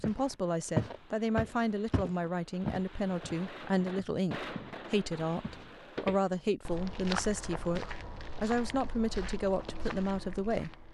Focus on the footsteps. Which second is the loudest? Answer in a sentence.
The volume of the footsteps peaks at 1 second.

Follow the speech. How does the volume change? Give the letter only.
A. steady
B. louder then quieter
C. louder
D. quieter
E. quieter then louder
A.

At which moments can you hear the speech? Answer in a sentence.
The speech can be heard from 0.0 to 10.8 s.